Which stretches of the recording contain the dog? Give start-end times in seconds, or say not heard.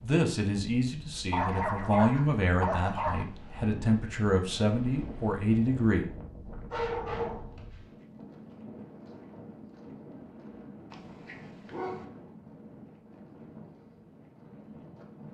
1.3-3.2, 6.7-7.8, 10.9-12.1.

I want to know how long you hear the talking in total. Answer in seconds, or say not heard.
6 s.